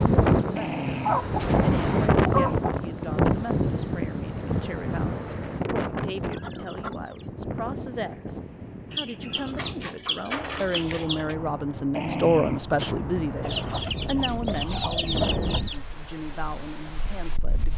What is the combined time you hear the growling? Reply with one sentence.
You can hear the growling for 3 seconds altogether.